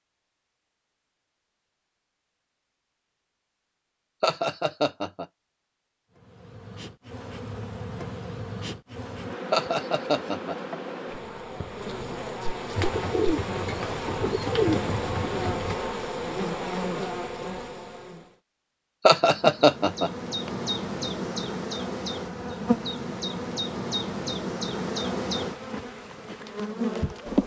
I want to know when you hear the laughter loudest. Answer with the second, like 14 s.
20 s.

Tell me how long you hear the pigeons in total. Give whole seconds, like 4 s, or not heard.
3 s.